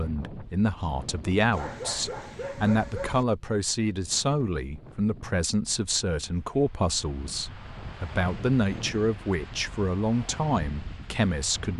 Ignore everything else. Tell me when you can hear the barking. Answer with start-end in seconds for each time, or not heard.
1.5-3.2.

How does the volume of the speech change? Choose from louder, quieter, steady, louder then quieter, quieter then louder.
steady.